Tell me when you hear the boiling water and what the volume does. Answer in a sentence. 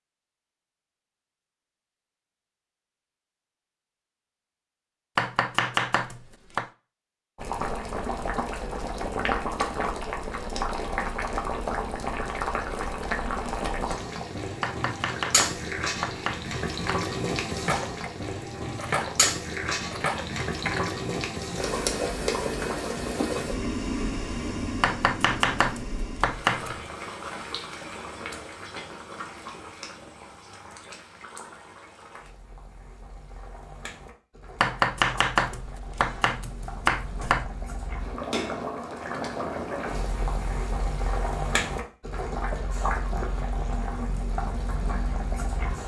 You can hear the boiling water from 7.3 to 45.8 s, getting quieter then louder.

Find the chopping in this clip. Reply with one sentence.
The chopping can be heard from 5.2 to 6.7 s, from 14.6 to 17.1 s, from 24.8 to 26.8 s and from 34.6 to 37.5 s.